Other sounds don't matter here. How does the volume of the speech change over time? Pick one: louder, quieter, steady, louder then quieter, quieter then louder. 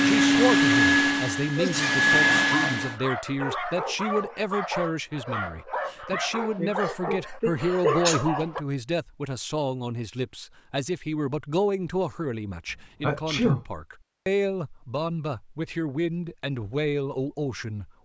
steady.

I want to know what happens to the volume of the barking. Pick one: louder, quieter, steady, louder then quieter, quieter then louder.
steady.